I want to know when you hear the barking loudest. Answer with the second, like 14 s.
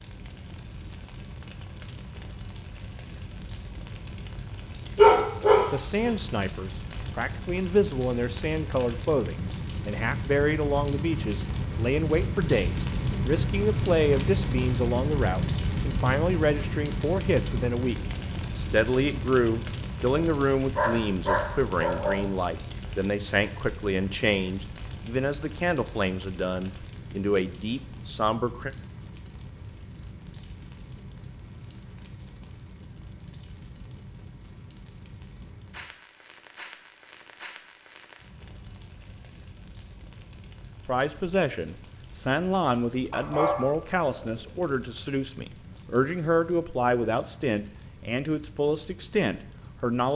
5 s.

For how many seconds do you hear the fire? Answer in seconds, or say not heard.
50 s.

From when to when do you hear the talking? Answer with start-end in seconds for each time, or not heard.
5.7-28.7, 40.9-50.1.